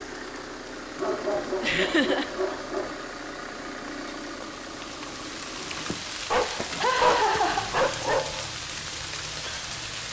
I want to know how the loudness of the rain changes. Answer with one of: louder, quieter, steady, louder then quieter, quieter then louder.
louder.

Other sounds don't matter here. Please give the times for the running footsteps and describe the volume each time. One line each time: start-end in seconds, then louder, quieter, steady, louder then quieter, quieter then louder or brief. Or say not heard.
not heard.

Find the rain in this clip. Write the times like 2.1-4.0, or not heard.
0.0-10.0.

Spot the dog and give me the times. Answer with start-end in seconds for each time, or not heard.
1.0-3.0, 6.2-8.4.